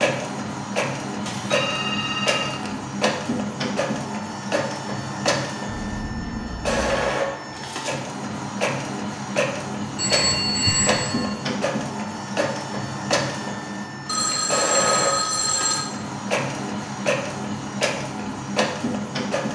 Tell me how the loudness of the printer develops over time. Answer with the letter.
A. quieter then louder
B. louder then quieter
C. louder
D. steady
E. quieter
D.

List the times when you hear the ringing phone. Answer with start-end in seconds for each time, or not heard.
1.2-2.7, 9.9-11.3, 14.1-15.9.